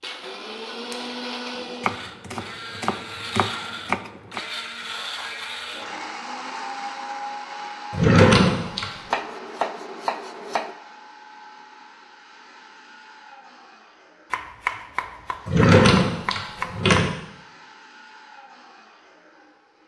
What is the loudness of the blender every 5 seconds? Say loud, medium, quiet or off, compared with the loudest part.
loud, loud, quiet, quiet.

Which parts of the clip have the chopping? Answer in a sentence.
The chopping can be heard from 1.8 to 4.4 s, from 9.1 to 10.8 s and from 14.3 to 17.0 s.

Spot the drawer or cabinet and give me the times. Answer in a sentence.
You can hear the drawer or cabinet from 0.9 to 1.9 s, from 7.9 to 8.9 s and from 15.4 to 17.1 s.